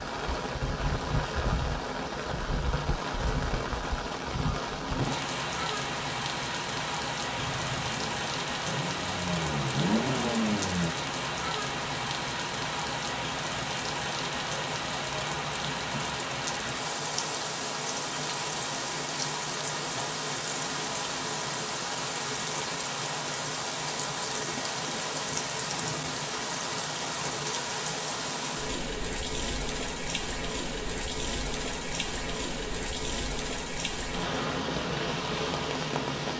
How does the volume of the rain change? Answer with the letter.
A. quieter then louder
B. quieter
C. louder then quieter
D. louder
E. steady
E.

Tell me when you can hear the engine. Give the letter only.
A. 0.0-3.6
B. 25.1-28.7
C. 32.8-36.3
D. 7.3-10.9
D.